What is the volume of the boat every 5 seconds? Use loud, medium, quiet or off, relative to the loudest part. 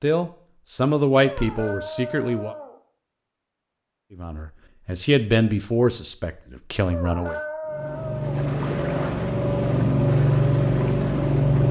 off, medium, loud.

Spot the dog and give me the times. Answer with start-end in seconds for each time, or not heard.
1.2-2.8, 6.9-8.4.